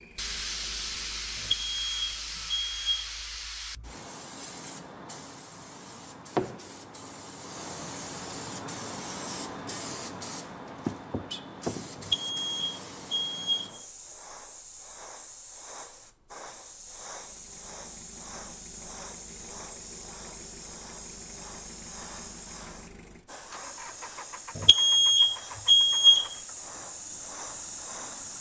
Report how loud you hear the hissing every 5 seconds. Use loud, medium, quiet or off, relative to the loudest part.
loud, loud, loud, medium, medium, loud.